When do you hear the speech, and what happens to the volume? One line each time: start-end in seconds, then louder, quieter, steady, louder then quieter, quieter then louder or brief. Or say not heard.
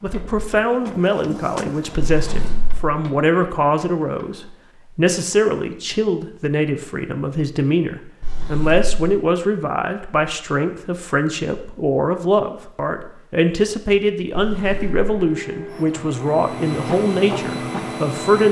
0.0-18.4 steady.